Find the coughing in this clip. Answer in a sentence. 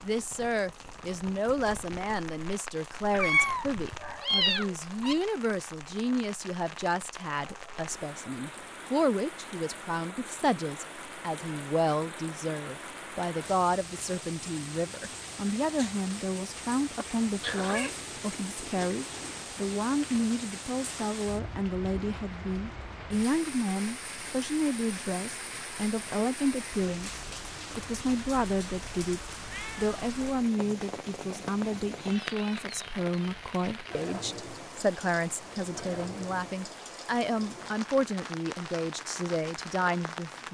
The coughing can be heard from 16.9 to 17.8 s.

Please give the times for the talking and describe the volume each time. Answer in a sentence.
The talking can be heard from 0.0 to 40.4 s, at a steady volume.